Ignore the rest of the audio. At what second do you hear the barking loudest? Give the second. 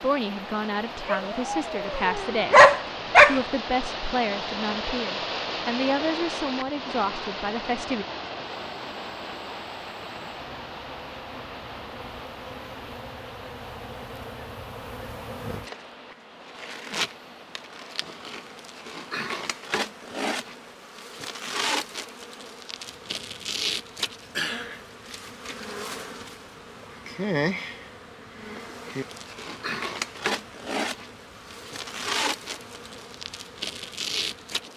3 s.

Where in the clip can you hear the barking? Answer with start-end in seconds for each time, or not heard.
1.1-3.4.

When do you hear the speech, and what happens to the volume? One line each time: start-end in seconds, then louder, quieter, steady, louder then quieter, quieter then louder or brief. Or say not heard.
0.0-8.1 steady.